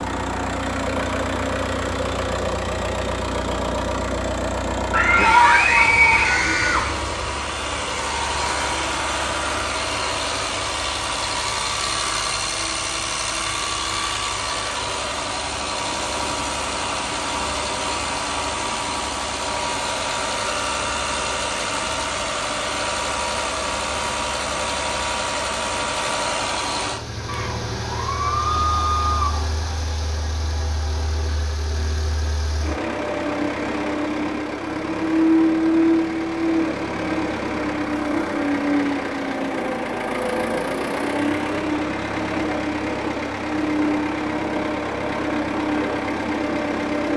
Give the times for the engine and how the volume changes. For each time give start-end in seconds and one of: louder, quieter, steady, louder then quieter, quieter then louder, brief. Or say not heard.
0.0-47.1 steady.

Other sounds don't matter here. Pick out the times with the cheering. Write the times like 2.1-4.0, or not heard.
4.9-6.9, 27.2-29.3.